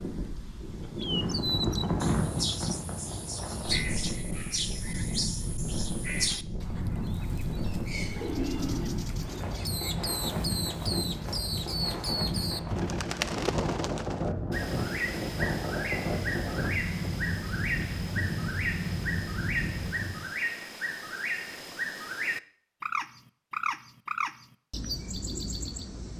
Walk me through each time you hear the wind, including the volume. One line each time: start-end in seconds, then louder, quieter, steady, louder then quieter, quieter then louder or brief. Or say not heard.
0.0-20.4 steady.